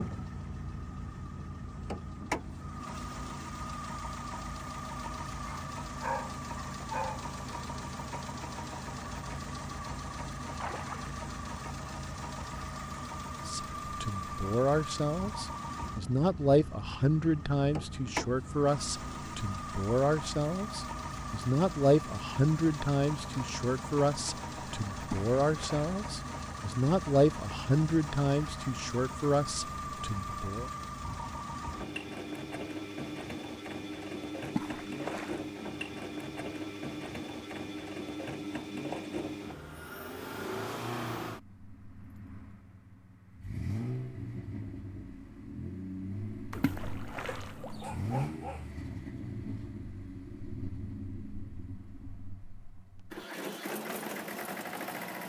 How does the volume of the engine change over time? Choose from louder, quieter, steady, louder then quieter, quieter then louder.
steady.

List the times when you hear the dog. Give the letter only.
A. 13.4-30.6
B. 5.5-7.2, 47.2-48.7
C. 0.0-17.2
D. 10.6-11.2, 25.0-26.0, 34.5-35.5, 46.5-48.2
B.